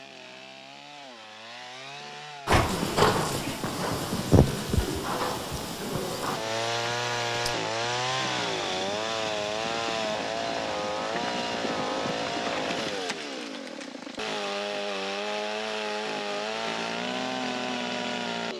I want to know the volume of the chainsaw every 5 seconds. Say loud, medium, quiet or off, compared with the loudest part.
quiet, loud, loud, loud.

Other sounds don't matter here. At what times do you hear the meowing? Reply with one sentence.
You can hear the meowing from 2.5 to 3.6 s.